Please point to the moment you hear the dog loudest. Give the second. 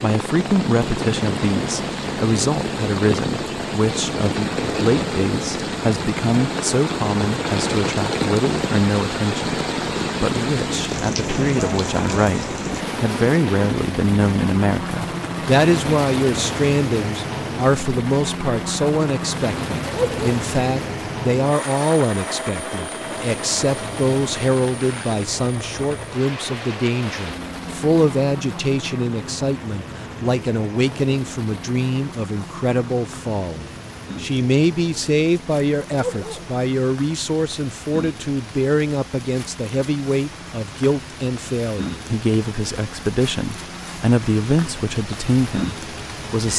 20 s.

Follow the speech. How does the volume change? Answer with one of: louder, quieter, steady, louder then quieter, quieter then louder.
steady.